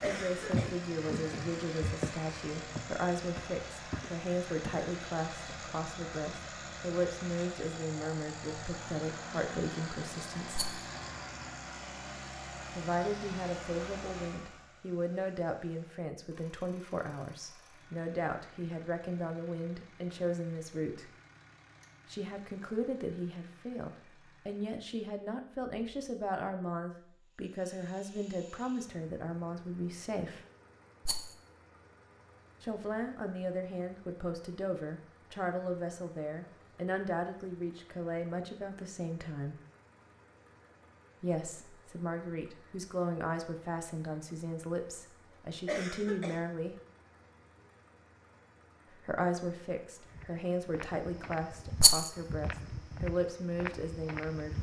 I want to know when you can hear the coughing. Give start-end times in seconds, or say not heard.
0.0-0.7, 45.6-46.4.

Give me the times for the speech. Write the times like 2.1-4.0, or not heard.
0.0-10.7, 12.7-21.1, 22.1-30.4, 32.6-39.5, 41.2-46.8, 48.9-54.5.